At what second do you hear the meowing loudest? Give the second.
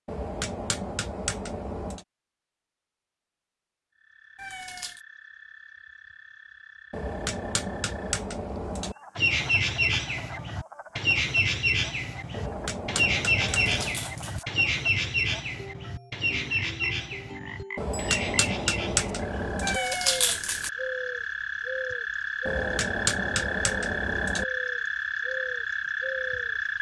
20 s.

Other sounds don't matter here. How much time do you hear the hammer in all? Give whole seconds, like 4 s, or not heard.
10 s.